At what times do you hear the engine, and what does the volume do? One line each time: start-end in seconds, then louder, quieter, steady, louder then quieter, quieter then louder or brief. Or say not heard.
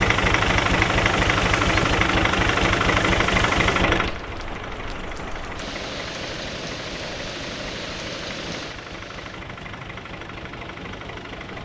0.0-11.6 quieter.